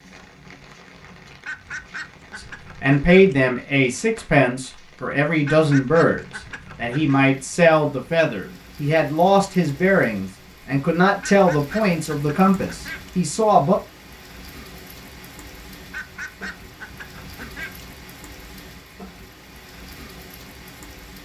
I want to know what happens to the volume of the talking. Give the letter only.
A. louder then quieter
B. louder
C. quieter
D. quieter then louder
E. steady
E.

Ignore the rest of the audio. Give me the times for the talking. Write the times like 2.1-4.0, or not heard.
2.8-13.8.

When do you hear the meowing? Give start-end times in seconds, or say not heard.
not heard.